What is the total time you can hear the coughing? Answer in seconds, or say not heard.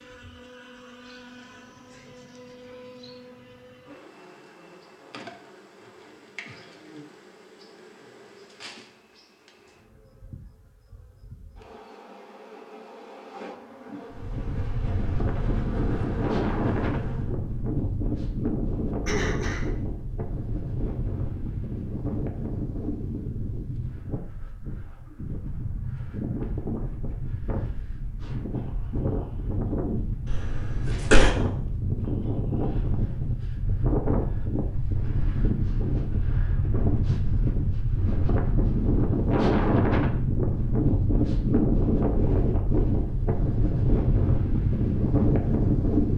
2 s.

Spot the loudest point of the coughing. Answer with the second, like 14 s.
31 s.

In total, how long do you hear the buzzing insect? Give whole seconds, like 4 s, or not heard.
17 s.